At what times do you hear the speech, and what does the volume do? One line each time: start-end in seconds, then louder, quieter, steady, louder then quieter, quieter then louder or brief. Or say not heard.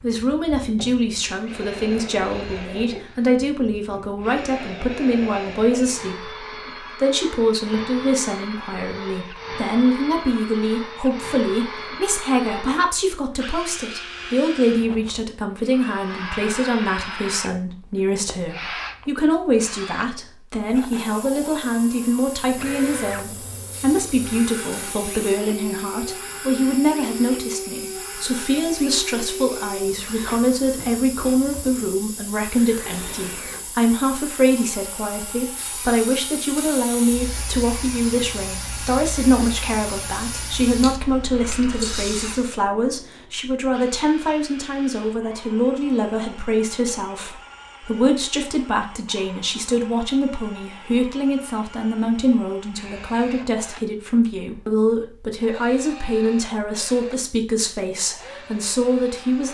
0.0-59.4 steady.